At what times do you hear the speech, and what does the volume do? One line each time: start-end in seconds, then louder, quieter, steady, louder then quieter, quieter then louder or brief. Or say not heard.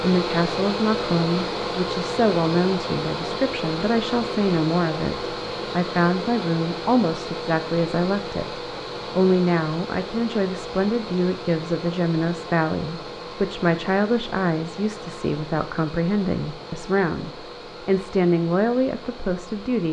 0.0-19.8 steady.